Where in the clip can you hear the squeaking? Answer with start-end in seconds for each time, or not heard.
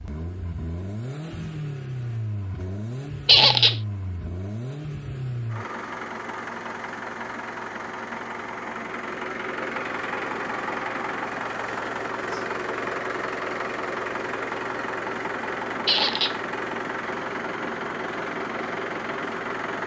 3.2-3.8, 15.8-16.4.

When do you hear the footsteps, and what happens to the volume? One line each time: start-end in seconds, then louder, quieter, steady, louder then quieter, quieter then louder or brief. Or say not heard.
not heard.